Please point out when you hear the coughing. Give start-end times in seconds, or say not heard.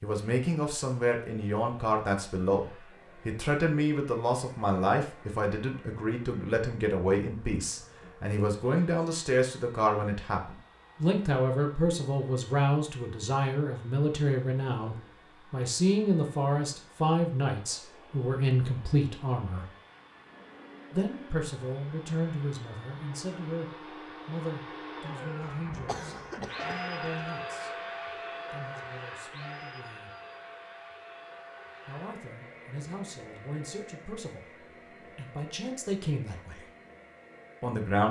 25.4-27.3.